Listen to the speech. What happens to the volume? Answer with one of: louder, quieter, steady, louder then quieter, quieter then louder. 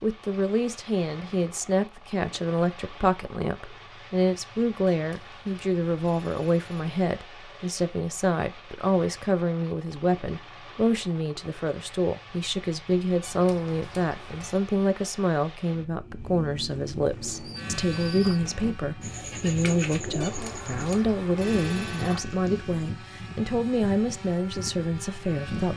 steady.